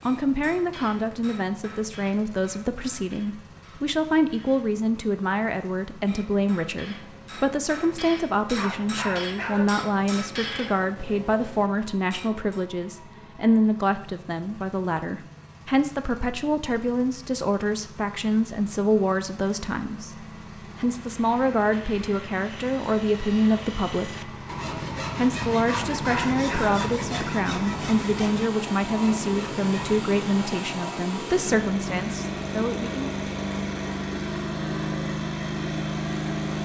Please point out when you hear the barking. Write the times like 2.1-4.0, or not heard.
8.6-9.7, 25.6-26.8.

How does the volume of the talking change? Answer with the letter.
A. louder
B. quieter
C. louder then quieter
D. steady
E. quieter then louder
D.